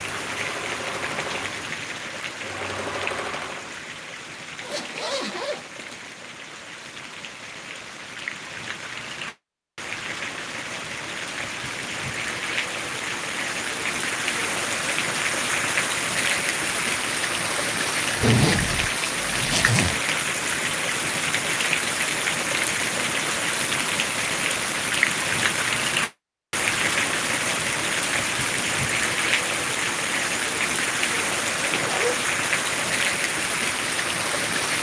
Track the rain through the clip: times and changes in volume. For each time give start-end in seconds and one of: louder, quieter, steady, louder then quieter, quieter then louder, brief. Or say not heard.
0.0-34.7 louder.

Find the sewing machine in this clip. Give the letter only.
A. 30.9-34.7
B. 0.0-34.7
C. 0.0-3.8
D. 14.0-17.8
C.